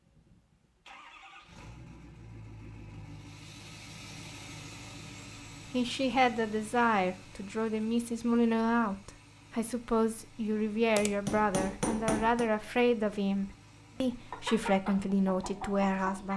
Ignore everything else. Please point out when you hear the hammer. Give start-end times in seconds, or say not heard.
10.9-12.5.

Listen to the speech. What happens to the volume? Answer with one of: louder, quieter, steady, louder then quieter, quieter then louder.
steady.